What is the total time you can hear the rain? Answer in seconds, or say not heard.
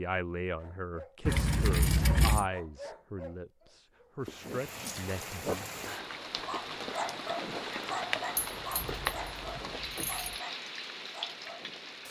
8 s.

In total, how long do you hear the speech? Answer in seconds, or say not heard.
6 s.